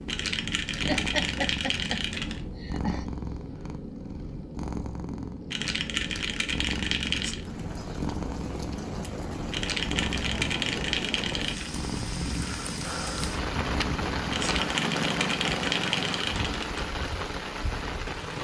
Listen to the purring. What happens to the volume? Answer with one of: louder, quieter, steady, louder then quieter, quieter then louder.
steady.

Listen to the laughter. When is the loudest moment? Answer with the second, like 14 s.
1 s.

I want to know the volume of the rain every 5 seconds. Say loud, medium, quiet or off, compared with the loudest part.
off, medium, loud, loud.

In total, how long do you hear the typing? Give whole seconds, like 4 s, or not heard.
9 s.